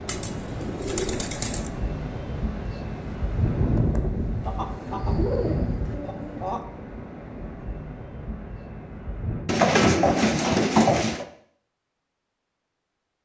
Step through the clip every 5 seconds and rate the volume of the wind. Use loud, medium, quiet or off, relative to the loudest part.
loud, loud, off.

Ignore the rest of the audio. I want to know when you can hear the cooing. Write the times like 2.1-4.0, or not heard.
0.1-1.7, 4.4-6.7, 9.4-11.2.